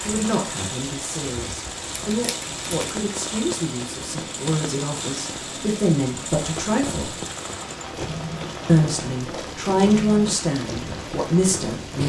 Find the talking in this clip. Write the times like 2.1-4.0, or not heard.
0.1-7.2, 8.7-12.0.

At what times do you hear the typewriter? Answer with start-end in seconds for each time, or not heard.
not heard.